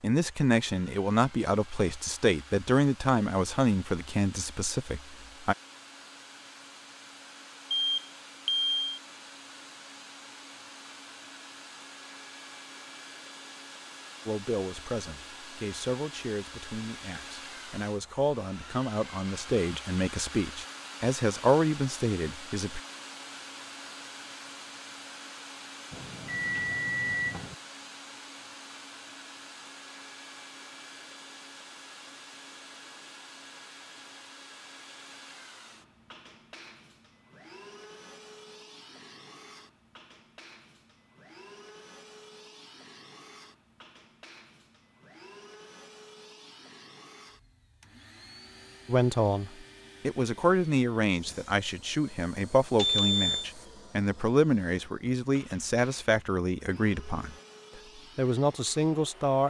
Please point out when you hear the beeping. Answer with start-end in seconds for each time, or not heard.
7.7-8.8, 25.9-27.6, 52.8-53.5.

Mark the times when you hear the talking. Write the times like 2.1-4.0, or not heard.
0.0-5.5, 14.2-22.8, 48.9-57.4, 58.1-59.4.